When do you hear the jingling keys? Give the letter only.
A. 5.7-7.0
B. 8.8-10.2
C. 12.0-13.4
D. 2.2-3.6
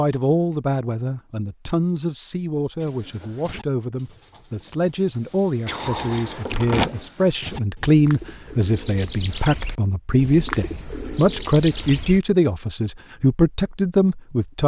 A.